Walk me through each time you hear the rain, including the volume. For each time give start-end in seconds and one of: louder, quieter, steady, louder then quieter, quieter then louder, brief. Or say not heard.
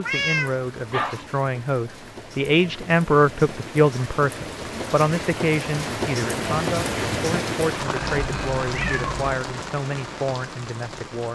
0.0-11.3 louder then quieter.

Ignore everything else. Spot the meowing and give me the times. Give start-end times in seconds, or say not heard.
0.0-1.2, 8.1-9.4.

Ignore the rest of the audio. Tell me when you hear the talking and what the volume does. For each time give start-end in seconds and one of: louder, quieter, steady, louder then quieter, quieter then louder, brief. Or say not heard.
0.0-11.3 louder then quieter.